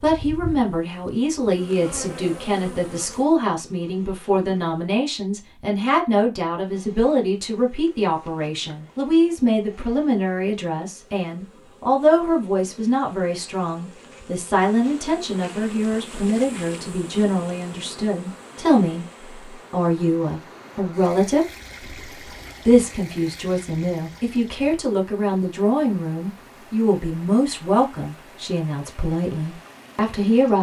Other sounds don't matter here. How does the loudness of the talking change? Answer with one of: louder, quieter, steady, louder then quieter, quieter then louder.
steady.